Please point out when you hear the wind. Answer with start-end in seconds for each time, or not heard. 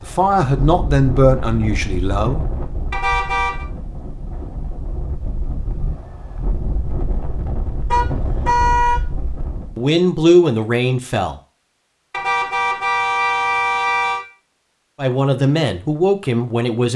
0.0-9.8.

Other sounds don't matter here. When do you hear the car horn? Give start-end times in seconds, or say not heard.
2.9-3.6, 7.9-9.0, 12.1-14.2.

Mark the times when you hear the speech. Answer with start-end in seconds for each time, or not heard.
0.0-2.5, 9.8-11.4, 14.9-16.9.